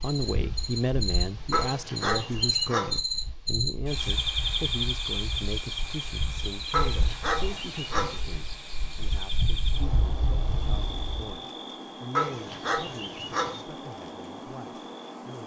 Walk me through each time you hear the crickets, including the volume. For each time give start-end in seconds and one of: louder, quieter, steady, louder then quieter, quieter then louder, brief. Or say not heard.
0.0-15.4 quieter.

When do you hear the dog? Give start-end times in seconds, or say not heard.
1.5-3.0, 6.7-8.2, 12.2-13.6.